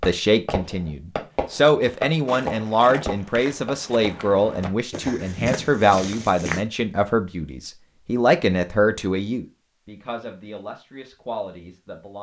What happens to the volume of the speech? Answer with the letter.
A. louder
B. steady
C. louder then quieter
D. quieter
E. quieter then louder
D.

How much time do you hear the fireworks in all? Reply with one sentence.
You can hear the fireworks for 5 seconds altogether.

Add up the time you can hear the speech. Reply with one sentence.
The speech can be heard for 12 seconds in total.